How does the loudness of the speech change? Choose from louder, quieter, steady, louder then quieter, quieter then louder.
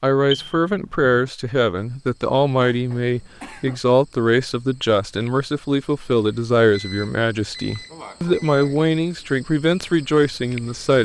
steady.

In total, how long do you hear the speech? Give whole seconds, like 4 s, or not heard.
11 s.